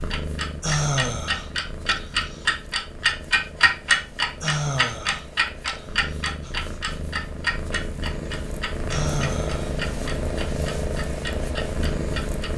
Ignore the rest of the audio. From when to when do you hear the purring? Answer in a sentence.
The purring can be heard from 0.0 to 12.5 s.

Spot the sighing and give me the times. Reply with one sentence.
The sighing can be heard from 0.6 to 2.5 s, from 4.4 to 6.5 s and from 8.9 to 9.8 s.